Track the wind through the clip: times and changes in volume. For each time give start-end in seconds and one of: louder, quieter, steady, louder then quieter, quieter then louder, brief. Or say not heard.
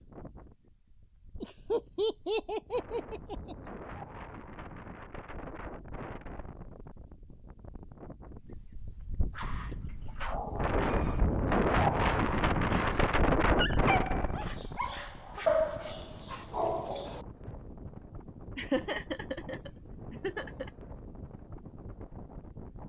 0.0-22.8 louder then quieter.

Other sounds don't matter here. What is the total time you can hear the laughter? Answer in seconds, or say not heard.
4 s.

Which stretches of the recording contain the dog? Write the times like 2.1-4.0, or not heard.
9.3-17.5.